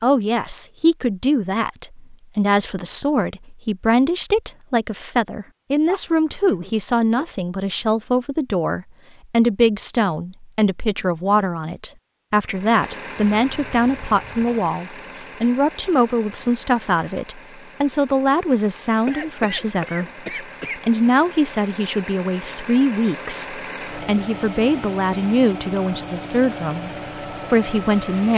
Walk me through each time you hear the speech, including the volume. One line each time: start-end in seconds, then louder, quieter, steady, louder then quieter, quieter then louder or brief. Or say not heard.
0.0-26.9 steady
27.5-28.3 brief.